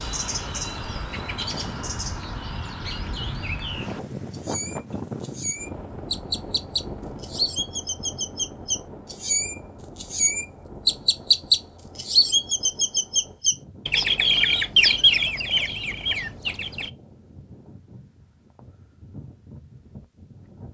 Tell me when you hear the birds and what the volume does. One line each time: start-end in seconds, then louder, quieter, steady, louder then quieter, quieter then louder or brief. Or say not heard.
0.0-16.9 louder.